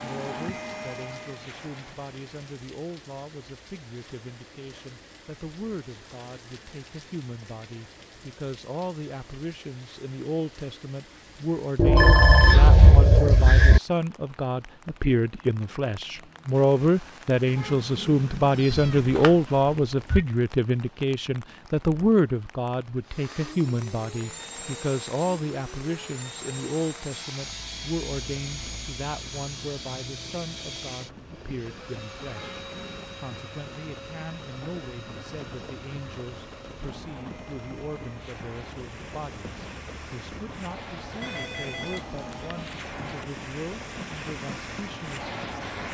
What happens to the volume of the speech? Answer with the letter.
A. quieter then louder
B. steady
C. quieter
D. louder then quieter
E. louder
D.